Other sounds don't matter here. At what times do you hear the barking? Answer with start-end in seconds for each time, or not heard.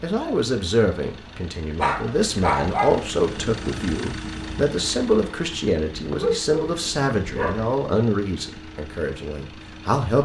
1.8-3.0, 6.0-7.7.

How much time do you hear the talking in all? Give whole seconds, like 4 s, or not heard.
10 s.